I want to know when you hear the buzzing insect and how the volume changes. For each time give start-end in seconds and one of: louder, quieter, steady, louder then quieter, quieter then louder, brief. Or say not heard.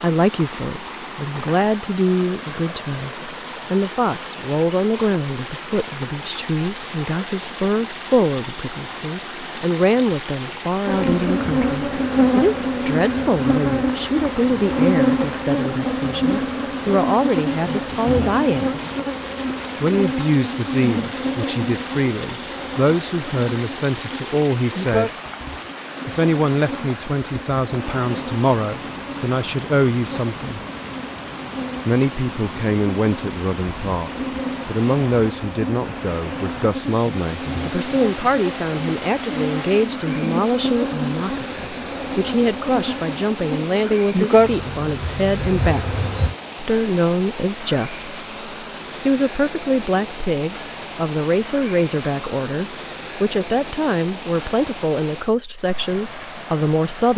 10.8-46.4 quieter then louder.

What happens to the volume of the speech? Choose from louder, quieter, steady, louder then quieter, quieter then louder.
steady.